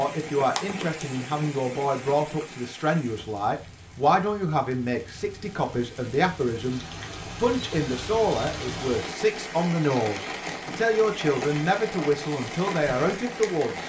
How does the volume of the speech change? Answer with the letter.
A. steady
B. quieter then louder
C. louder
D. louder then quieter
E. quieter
A.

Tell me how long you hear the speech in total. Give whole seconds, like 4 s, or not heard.
14 s.